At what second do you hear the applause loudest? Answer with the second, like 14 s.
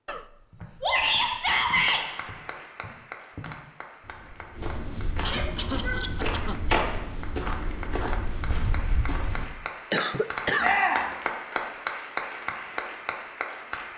12 s.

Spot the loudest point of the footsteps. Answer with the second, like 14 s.
7 s.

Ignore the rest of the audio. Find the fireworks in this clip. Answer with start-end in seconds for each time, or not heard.
not heard.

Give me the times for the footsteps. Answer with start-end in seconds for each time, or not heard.
0.5-9.5.